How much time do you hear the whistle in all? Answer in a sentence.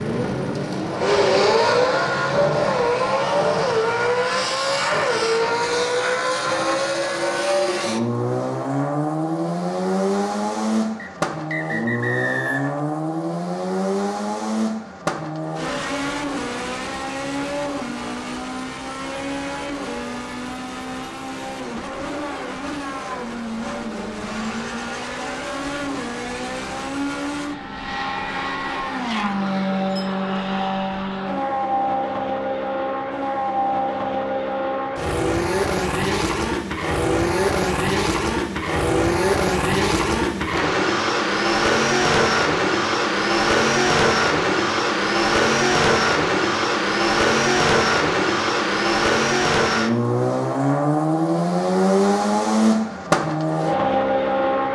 You can hear the whistle for 2 seconds altogether.